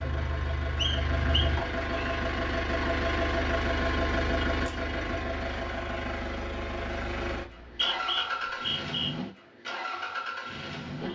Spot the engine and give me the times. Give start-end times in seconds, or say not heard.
0.0-11.1.